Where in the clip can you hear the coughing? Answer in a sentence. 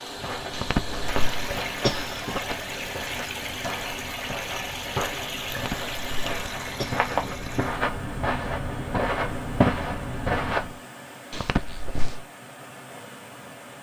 The coughing can be heard from 0.5 to 2.5 s, from 5.5 to 7.5 s and from 11.3 to 12.2 s.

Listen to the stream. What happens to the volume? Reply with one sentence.
The loudness of the stream goes down.